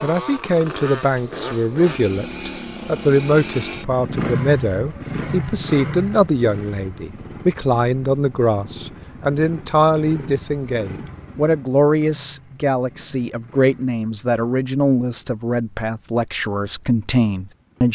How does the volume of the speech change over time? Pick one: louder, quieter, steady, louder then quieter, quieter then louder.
steady.